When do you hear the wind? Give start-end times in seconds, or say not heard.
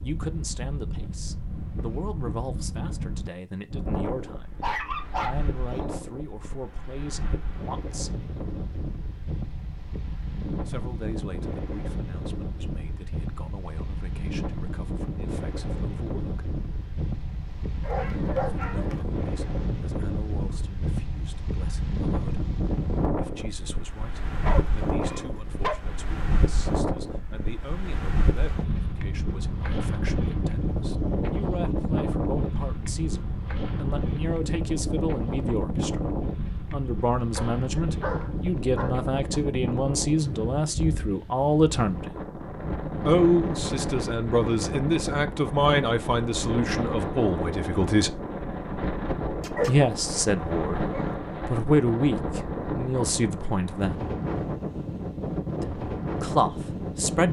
0.0-57.2.